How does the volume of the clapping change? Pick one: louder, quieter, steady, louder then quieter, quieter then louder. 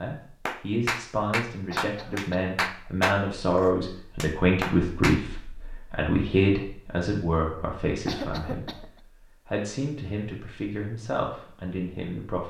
quieter then louder.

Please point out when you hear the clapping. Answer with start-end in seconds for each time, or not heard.
0.5-5.2.